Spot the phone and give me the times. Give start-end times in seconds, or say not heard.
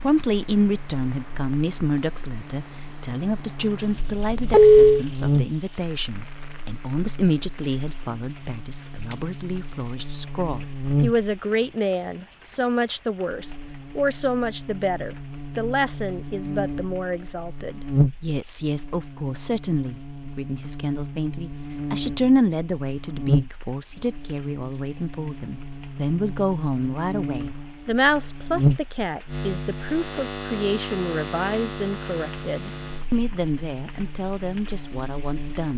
4.0-5.0.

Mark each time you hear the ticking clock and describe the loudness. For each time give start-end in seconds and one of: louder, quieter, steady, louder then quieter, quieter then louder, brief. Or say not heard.
not heard.